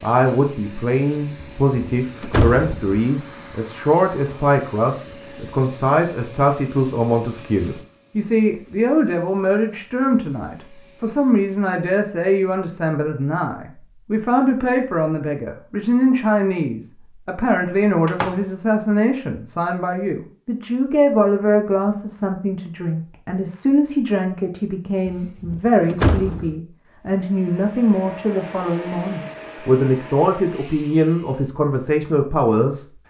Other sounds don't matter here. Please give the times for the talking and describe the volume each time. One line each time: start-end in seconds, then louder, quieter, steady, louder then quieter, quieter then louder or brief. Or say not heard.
0.0-32.9 steady.